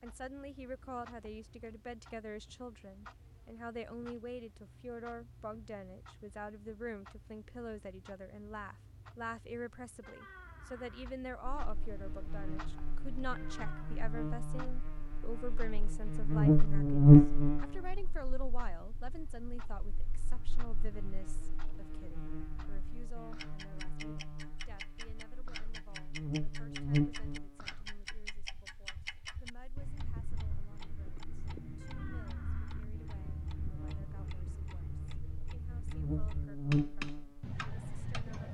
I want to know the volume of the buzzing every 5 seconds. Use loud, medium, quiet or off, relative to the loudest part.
off, off, quiet, loud, quiet, quiet, quiet, quiet.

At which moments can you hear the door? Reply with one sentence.
You can hear the door from 10.0 to 11.1 s, from 13.3 to 14.0 s and from 31.8 to 32.9 s.